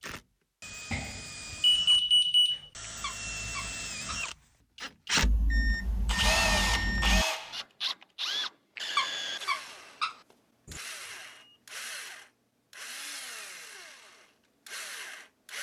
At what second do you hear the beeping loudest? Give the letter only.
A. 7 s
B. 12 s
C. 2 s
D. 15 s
C.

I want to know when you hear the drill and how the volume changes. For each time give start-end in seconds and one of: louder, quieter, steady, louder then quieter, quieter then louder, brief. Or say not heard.
0.0-15.5 louder then quieter.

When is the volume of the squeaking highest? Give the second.
9 s.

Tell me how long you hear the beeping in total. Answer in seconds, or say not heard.
5 s.